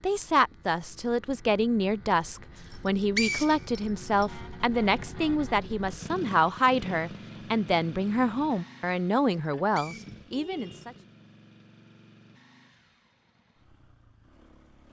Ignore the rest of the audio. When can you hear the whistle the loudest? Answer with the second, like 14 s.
3 s.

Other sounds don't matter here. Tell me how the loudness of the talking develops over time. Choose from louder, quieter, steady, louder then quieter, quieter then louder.
steady.